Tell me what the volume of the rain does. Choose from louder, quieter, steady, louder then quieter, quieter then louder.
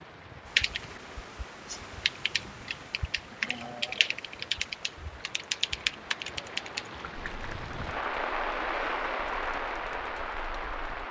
louder.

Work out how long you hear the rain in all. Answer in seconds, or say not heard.
11 s.